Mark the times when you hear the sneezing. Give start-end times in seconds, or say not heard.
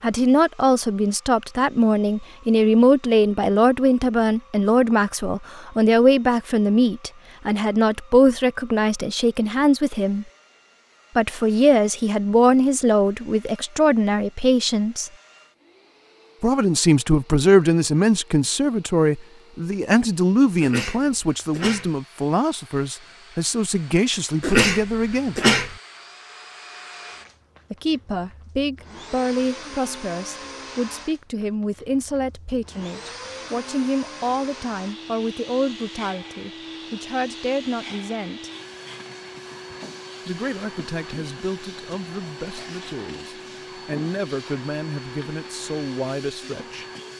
20.6-21.9, 24.4-25.8.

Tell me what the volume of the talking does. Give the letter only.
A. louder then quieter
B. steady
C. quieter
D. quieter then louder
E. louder
C.